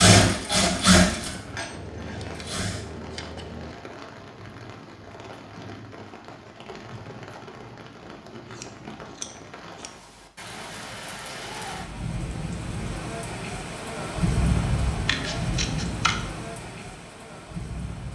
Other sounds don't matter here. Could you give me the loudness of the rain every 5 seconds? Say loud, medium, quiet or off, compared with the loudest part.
medium, medium, loud, loud.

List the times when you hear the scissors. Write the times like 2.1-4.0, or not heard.
1.7-3.8, 8.5-9.9, 15.1-16.1.